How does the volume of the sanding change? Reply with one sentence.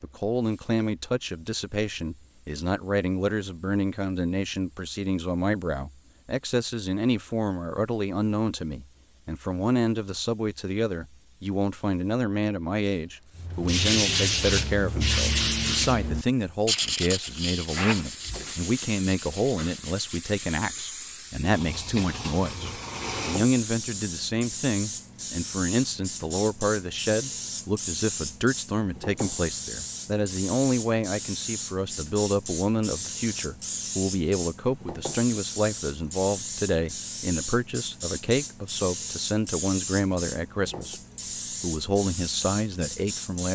The volume of the sanding goes down.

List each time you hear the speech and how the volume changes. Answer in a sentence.
The speech can be heard from 0.0 to 41.0 s, at a steady volume; and briefly from 41.6 to 43.4 s.